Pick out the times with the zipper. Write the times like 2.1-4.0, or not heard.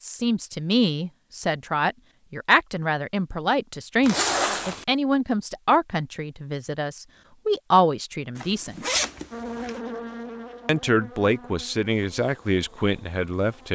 4.0-4.8, 8.3-9.8.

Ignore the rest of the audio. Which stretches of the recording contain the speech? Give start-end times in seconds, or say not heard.
0.0-8.8, 10.7-13.7.